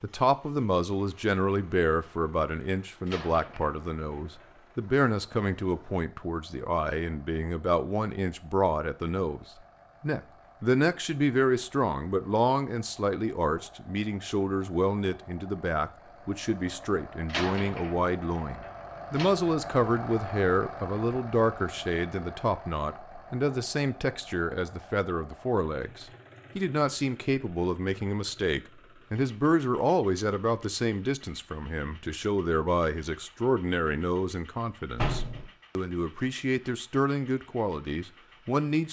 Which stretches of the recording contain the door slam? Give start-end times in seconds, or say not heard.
3.0-4.5, 17.2-19.3, 35.0-35.5.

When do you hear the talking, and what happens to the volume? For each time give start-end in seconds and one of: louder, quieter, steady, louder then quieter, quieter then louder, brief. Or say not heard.
0.0-38.8 steady.